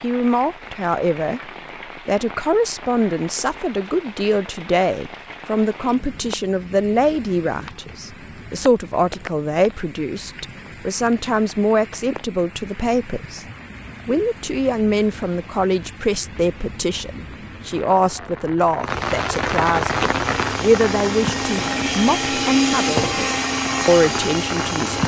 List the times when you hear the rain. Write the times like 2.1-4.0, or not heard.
0.0-25.0.